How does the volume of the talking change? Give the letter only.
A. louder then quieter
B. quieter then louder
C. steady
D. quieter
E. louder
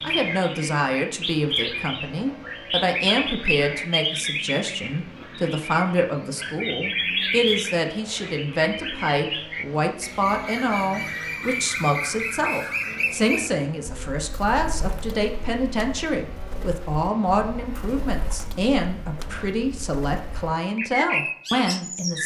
C.